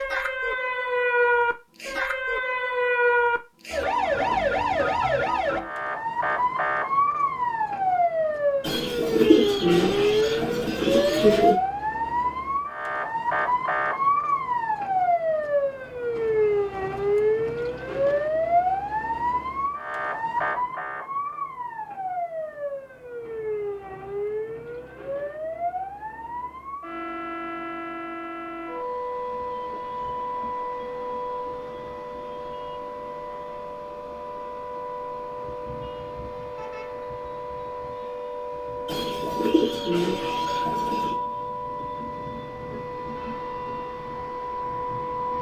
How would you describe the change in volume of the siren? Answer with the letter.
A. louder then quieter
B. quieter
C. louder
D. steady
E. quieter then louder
B.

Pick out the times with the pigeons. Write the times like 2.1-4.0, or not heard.
8.6-11.6, 38.9-41.1.